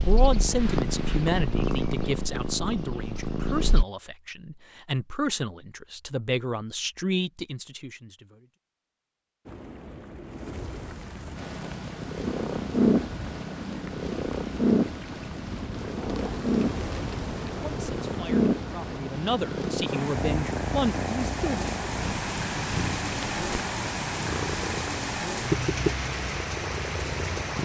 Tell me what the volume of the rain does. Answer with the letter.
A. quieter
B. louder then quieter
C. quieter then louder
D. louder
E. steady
D.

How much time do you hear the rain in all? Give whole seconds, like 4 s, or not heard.
18 s.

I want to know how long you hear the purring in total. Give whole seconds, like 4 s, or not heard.
20 s.